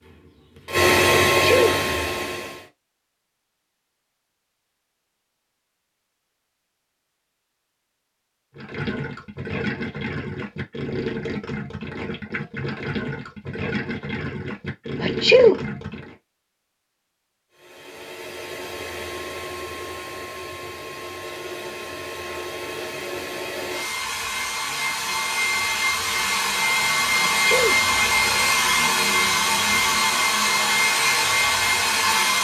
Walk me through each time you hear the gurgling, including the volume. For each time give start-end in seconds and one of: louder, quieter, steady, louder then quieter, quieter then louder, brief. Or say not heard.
8.5-16.1 steady.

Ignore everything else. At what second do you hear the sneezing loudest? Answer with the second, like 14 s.
15 s.